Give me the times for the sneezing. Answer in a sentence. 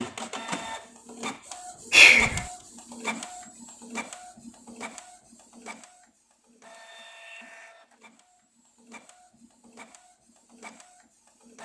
The sneezing can't be heard in this clip.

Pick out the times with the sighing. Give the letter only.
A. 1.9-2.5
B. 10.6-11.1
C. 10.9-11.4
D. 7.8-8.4
A.